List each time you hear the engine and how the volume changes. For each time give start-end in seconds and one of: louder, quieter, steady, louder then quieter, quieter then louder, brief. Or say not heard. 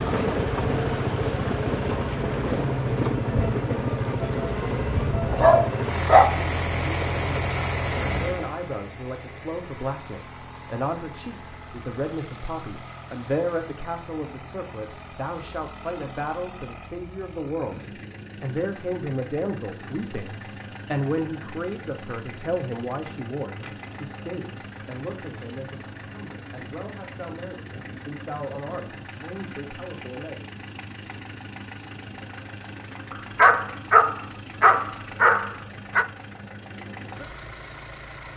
0.0-38.3 quieter.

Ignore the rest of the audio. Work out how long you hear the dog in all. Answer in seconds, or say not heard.
4 s.